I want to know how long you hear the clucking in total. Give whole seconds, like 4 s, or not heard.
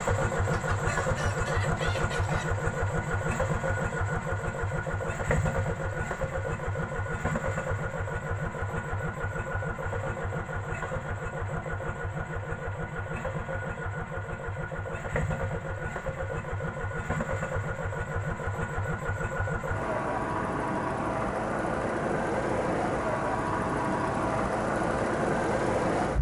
2 s.